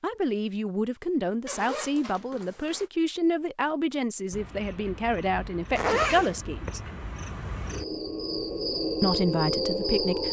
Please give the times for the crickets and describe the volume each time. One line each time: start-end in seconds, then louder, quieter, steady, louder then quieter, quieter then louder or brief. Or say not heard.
4.3-10.2 louder.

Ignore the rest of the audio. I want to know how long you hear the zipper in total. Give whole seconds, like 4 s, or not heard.
2 s.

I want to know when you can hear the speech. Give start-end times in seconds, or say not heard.
0.0-6.8, 9.0-10.2.